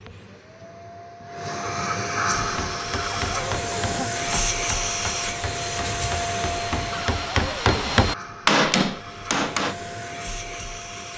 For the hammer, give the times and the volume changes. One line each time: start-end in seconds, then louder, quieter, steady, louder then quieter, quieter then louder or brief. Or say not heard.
2.3-9.8 louder.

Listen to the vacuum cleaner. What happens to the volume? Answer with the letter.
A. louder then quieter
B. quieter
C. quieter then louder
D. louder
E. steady
B.